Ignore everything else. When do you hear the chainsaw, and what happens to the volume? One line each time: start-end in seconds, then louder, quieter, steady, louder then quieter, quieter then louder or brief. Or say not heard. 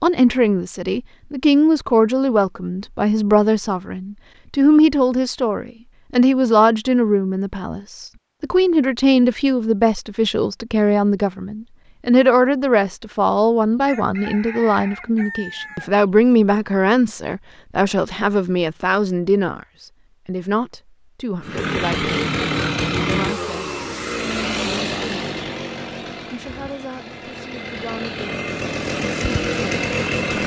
21.4-30.4 quieter then louder.